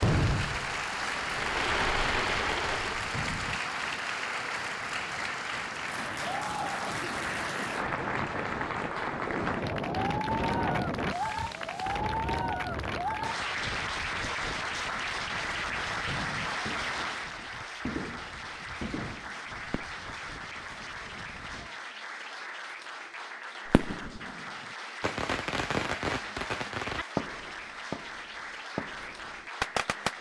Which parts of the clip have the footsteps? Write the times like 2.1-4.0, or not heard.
not heard.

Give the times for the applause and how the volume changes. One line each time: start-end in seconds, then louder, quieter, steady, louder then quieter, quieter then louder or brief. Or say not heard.
0.0-30.1 quieter.